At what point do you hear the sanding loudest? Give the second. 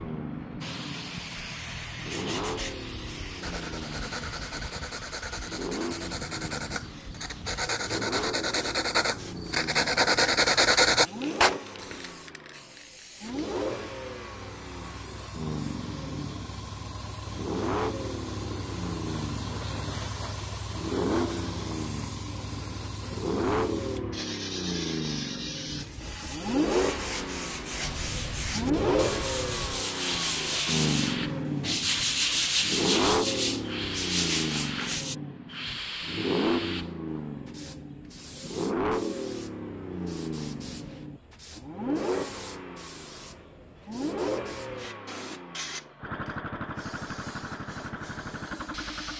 11 s.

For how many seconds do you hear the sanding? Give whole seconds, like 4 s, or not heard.
19 s.